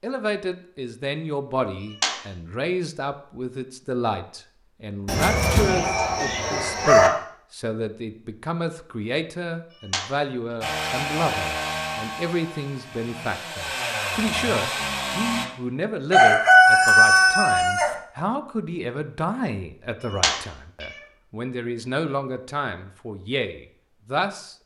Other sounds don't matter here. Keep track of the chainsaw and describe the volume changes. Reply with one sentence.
The loudness of the chainsaw goes down, then up.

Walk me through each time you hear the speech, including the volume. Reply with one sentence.
You can hear the speech from 0.0 to 24.6 s, at a steady volume.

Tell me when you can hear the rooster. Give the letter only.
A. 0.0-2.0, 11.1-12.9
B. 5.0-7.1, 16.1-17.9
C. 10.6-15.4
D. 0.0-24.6
B.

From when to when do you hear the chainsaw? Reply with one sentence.
You can hear the chainsaw from 10.6 to 15.4 s.